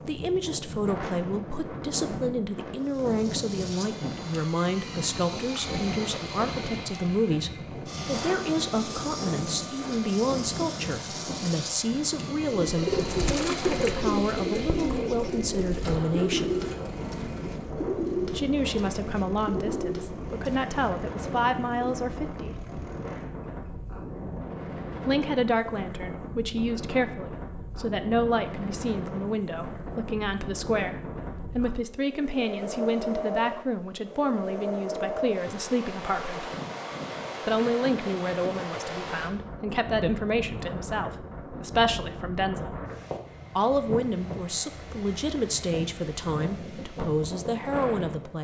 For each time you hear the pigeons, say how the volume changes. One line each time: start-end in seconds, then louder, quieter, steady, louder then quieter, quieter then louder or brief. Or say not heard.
12.7-22.0 quieter.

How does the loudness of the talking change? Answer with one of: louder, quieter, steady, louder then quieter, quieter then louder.
steady.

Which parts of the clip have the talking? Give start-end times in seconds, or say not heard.
0.1-16.6, 18.3-22.6, 25.1-36.5, 37.5-42.8, 43.5-48.3.